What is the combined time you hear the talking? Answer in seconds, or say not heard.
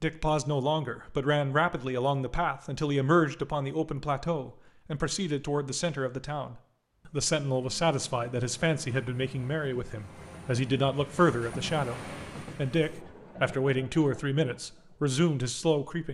16 s.